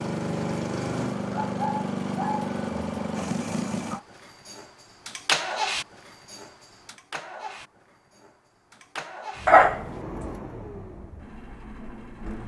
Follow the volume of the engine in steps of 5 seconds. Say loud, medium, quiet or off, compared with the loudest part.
loud, loud, medium.